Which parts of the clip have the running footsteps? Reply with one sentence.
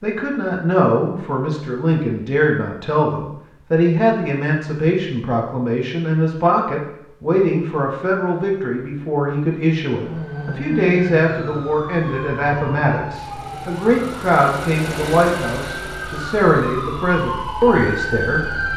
The running footsteps can't be heard in this clip.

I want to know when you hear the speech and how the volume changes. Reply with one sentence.
You can hear the speech from 0.0 to 18.4 s, at a steady volume.